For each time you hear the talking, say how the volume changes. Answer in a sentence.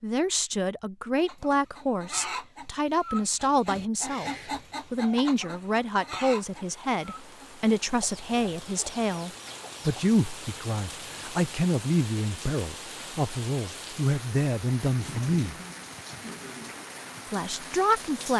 You can hear the talking from 0.0 to 15.6 s, at a steady volume; and briefly from 17.3 to 18.3 s.